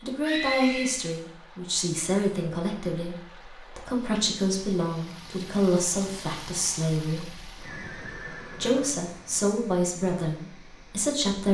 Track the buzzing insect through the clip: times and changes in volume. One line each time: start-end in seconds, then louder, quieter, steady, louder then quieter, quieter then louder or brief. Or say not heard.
not heard.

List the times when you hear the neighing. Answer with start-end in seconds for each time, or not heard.
0.2-1.0, 7.6-9.5.